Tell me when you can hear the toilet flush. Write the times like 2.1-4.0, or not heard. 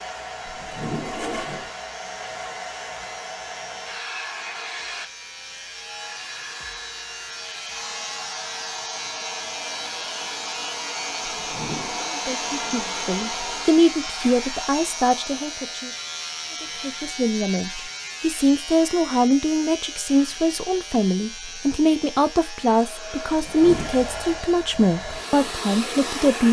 0.5-1.7, 11.2-12.1, 23.3-23.9.